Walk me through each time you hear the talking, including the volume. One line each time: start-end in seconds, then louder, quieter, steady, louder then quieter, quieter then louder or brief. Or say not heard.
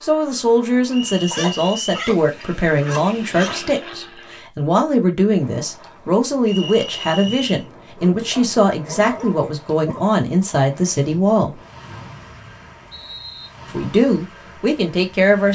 0.0-11.6 steady
13.7-15.5 brief.